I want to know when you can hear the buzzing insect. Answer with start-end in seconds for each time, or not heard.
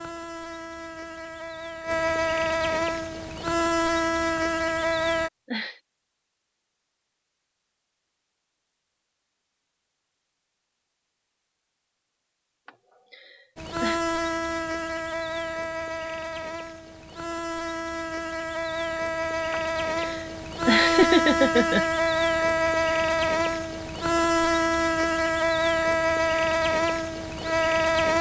0.0-5.3, 13.6-28.1.